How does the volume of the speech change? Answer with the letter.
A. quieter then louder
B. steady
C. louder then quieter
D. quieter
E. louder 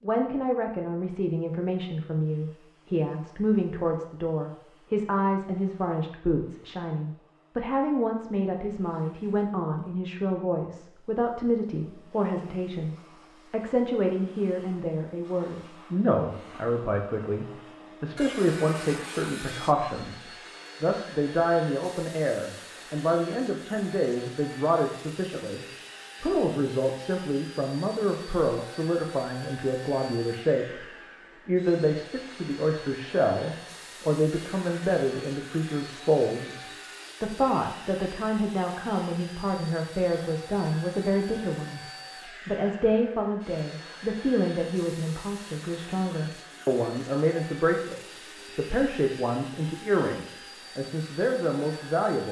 B.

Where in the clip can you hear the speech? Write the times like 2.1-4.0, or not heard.
0.0-41.8, 42.5-52.2.